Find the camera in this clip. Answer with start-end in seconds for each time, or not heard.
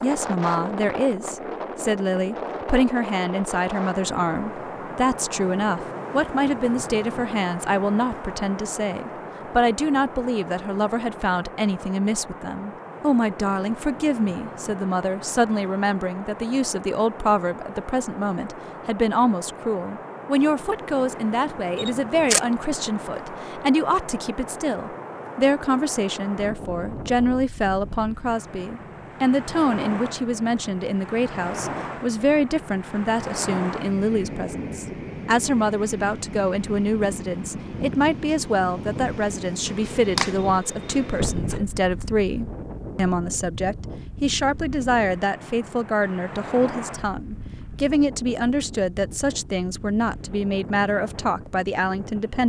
21.8-22.4, 39.6-41.4.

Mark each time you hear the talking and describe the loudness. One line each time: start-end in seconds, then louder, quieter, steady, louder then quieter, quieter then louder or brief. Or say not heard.
0.0-52.4 steady.